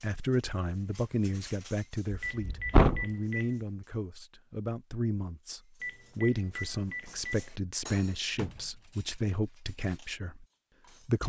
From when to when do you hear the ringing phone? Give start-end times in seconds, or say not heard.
2.2-3.5, 5.8-7.5.